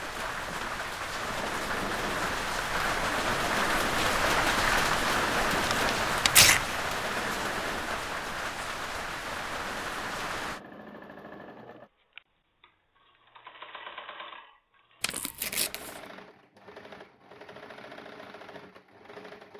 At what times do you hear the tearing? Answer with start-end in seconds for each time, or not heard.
5.6-6.6, 15.0-16.0.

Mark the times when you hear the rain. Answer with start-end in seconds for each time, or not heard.
0.0-10.6.